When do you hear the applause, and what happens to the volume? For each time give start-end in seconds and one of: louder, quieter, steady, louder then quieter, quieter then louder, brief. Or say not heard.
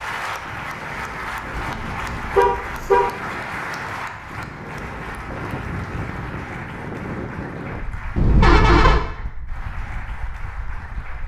0.0-11.2 quieter.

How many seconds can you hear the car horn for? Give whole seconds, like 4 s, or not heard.
2 s.